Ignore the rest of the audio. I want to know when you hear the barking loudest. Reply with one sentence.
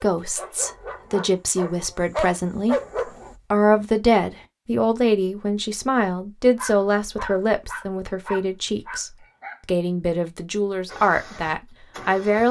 The volume of the barking peaks at 3 seconds.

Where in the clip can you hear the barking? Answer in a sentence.
You can hear the barking from 0.0 to 3.4 s and from 6.5 to 9.6 s.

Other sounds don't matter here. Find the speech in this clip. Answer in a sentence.
The speech can be heard from 0.0 to 12.4 s.